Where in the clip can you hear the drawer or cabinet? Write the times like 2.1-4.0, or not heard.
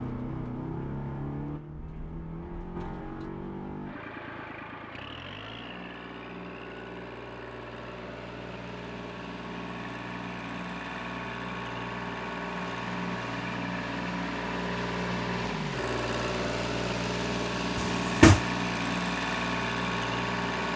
17.8-18.4.